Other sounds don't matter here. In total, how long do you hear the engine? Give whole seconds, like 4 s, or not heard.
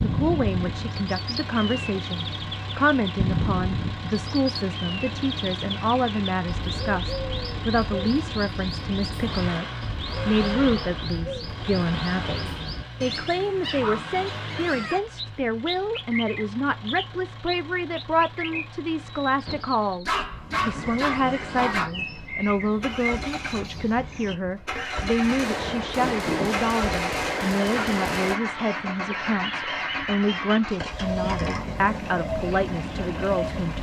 34 s.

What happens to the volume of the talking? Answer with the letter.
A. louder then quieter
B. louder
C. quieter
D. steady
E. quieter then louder
D.